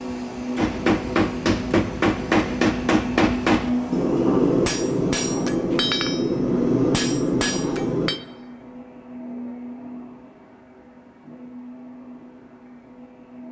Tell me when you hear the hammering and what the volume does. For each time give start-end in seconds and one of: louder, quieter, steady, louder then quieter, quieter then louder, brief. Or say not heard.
0.6-8.2 steady.